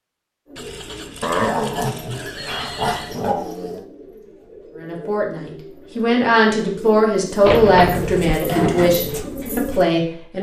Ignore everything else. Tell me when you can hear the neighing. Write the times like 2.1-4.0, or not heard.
0.6-3.2, 7.4-8.4.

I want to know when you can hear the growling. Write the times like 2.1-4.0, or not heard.
1.2-3.9.